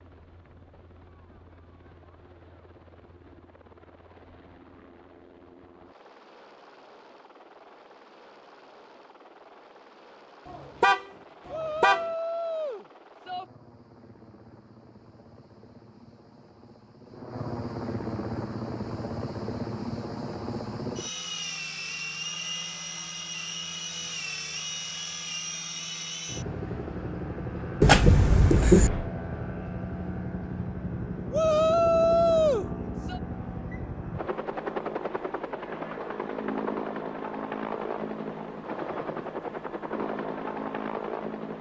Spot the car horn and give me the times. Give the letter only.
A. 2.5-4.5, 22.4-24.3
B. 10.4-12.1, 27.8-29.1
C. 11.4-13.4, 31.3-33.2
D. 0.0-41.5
B.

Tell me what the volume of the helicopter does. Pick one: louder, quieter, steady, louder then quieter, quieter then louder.
louder.